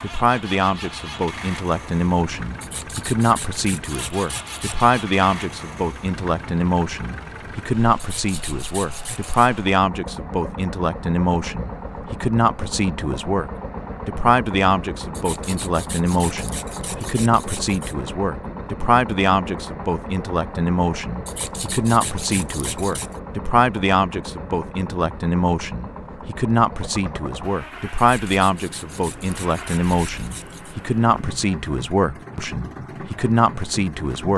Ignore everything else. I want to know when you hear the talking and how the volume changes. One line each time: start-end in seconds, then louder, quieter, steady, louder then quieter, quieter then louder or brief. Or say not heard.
0.0-34.3 steady.